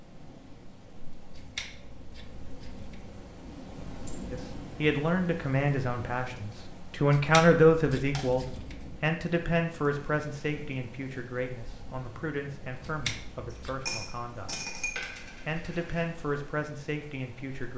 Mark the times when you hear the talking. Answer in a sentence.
The talking can be heard from 4.3 to 14.5 s and from 15.4 to 17.7 s.